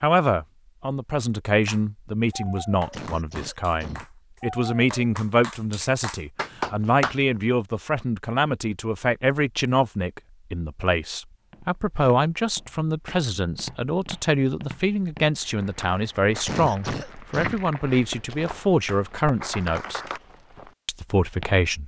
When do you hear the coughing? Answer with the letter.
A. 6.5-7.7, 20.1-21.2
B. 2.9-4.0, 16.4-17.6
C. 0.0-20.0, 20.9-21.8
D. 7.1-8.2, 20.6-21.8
B.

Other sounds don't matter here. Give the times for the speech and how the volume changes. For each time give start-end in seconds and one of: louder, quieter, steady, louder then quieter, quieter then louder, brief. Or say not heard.
0.0-20.0 steady
20.9-21.8 brief.